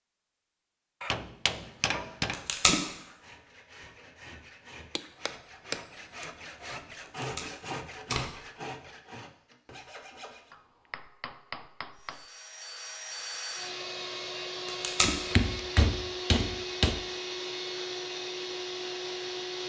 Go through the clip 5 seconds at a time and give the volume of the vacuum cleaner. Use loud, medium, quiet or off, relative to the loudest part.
off, off, loud, loud.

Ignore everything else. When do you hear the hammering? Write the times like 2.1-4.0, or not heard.
1.0-2.4, 5.0-6.3, 10.5-12.2, 15.2-17.0.